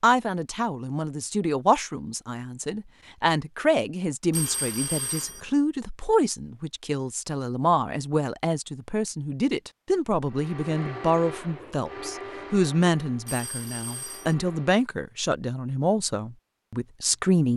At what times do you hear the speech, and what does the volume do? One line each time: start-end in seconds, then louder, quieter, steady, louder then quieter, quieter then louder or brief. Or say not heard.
0.0-17.5 steady.